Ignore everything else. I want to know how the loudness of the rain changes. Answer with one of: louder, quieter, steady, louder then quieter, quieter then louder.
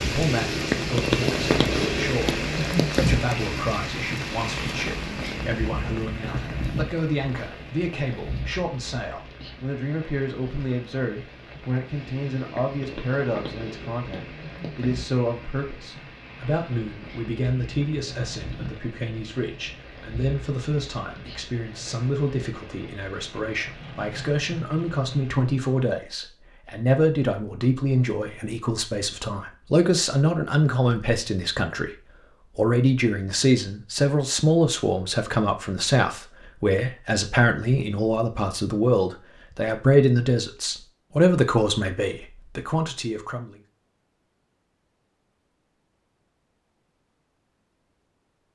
quieter.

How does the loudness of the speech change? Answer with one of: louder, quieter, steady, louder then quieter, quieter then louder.
louder.